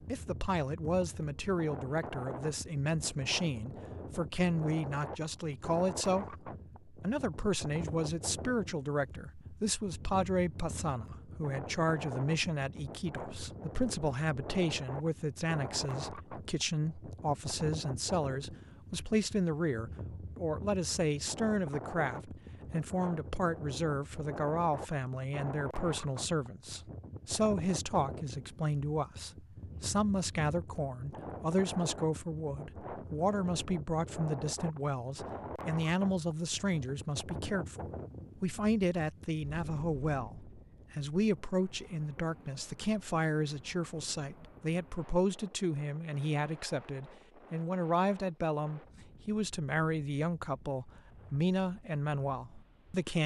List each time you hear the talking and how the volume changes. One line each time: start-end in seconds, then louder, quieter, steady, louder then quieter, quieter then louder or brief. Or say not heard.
0.1-53.2 steady.